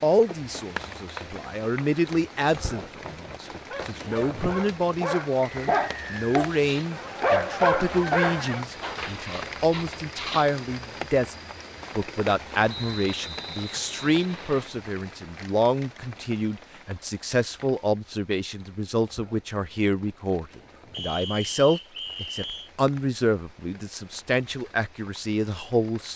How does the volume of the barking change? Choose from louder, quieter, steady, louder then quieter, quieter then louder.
louder then quieter.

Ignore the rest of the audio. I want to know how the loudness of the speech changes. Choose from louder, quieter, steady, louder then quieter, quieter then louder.
steady.